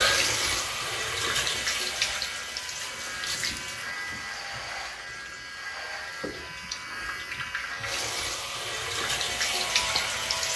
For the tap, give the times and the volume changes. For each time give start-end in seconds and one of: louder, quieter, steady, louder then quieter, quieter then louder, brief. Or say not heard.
0.0-10.5 quieter then louder.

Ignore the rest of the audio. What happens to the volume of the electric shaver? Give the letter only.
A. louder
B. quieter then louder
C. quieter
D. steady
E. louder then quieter
D.